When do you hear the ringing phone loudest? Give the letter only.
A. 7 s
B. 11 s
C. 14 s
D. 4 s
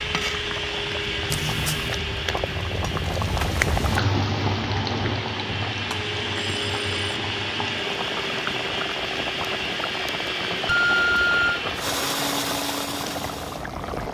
B.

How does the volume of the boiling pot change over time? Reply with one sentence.
The volume of the boiling pot goes up, then down.